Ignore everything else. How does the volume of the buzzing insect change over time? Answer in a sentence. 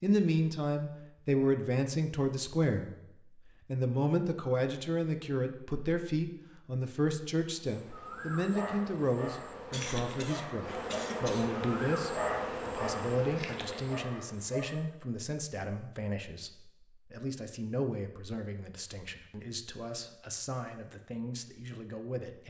The volume of the buzzing insect goes up.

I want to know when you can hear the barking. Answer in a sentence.
The barking can be heard from 7.7 to 14.8 s.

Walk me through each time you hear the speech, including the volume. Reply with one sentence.
The speech can be heard from 0.0 to 22.4 s, getting quieter.